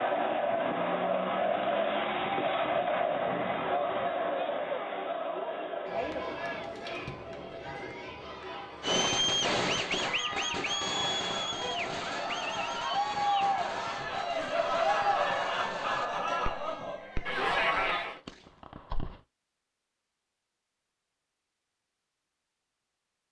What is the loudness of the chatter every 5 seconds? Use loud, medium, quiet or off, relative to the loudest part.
loud, medium, loud, loud, off.